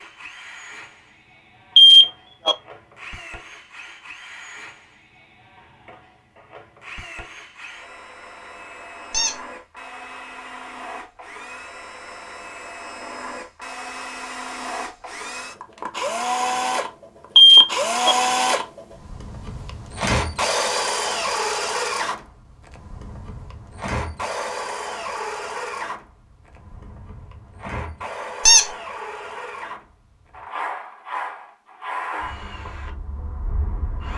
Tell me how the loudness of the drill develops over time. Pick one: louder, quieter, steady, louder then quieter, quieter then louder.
louder then quieter.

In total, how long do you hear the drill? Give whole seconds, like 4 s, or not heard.
34 s.